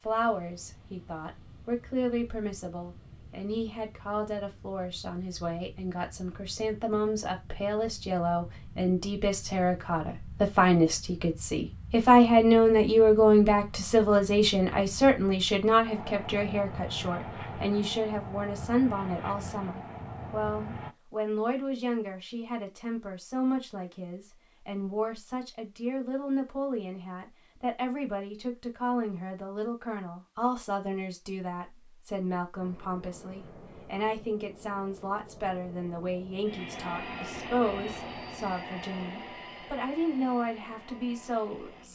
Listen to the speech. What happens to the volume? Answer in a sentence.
The volume of the speech goes up, then down.